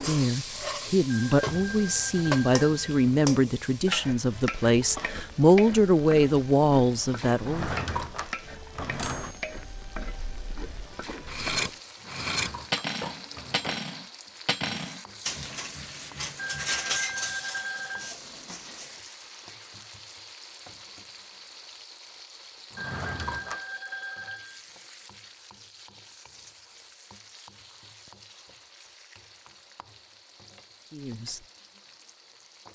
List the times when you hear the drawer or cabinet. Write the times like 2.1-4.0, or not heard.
7.3-9.3, 11.9-13.8, 22.7-23.6.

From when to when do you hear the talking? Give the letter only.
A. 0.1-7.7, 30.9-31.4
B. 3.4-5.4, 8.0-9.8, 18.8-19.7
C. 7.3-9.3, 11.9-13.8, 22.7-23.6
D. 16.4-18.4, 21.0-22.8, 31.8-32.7
A.